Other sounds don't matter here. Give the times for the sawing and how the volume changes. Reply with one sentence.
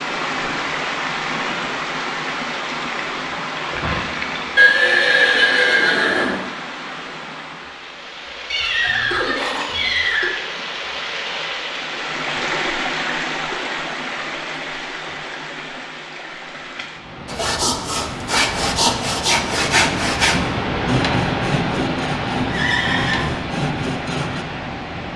You can hear the sawing from 17.2 to 24.4 s, getting quieter.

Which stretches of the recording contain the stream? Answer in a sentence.
You can hear the stream from 0.0 to 25.1 s.